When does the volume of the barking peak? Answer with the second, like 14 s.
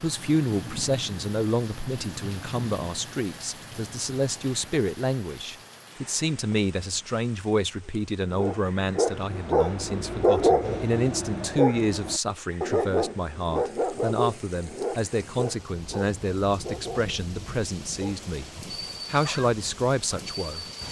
10 s.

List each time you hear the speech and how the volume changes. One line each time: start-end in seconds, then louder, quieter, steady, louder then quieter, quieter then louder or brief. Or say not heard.
0.0-20.6 steady.